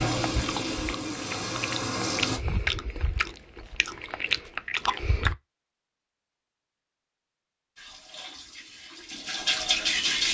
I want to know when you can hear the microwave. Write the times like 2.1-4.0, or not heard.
not heard.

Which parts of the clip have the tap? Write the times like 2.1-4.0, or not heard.
0.0-2.4, 7.8-10.2.